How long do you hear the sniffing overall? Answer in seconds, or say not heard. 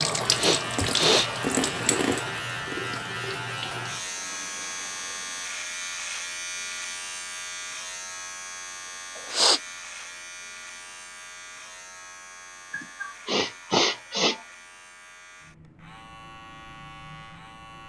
3 s.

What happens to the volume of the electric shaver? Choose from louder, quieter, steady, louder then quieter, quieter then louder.
quieter.